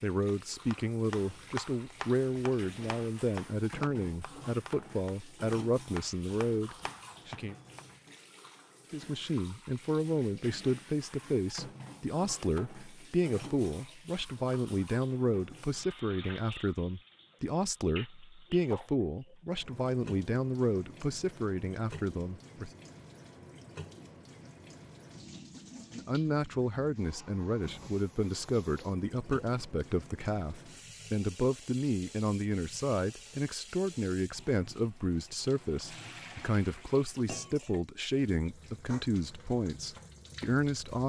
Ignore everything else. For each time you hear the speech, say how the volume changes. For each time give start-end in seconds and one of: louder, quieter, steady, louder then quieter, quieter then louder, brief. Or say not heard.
0.0-7.5 steady
8.9-22.7 steady
25.9-41.0 steady.